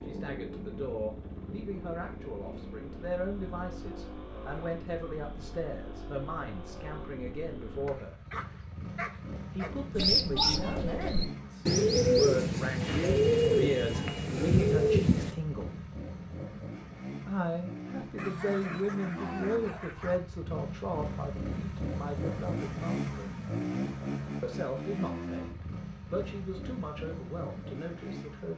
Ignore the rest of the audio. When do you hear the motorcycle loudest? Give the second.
23 s.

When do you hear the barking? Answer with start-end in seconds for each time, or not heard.
7.8-9.8, 18.1-20.2.